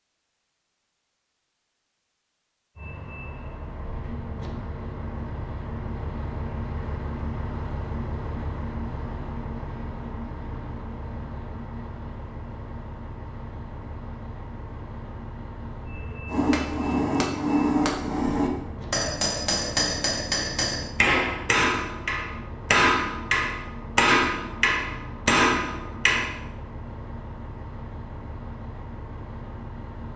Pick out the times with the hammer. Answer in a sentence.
You can hear the hammer from 16.2 to 26.3 s.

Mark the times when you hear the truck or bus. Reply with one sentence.
You can hear the truck or bus from 2.8 to 30.1 s.